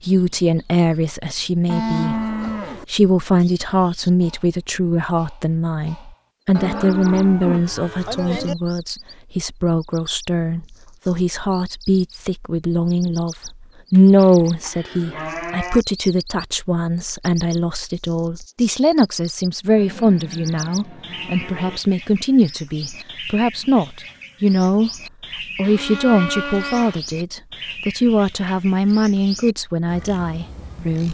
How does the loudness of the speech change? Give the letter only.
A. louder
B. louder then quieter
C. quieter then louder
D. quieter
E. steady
E.